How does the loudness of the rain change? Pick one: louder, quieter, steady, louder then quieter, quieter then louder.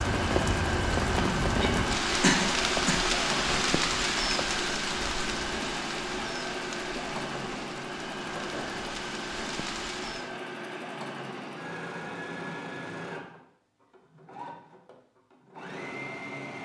quieter.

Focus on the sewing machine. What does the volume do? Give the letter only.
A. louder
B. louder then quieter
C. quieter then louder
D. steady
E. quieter
E.